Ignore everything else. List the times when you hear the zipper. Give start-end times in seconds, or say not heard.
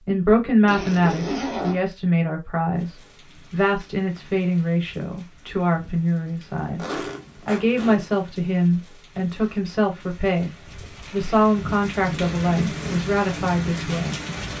0.7-1.9, 6.8-8.1, 10.8-11.4.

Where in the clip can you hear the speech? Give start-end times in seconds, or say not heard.
0.1-10.5, 11.1-14.2.